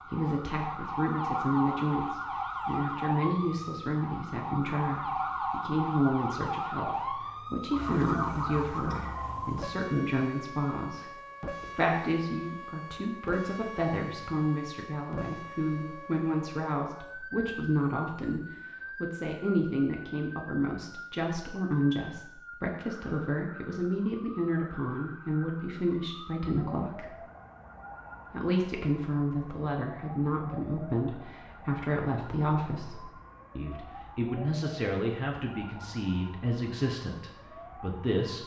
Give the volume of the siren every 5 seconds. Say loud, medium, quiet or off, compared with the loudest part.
loud, loud, medium, medium, quiet, quiet, quiet, quiet.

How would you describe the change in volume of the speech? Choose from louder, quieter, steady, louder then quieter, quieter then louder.
steady.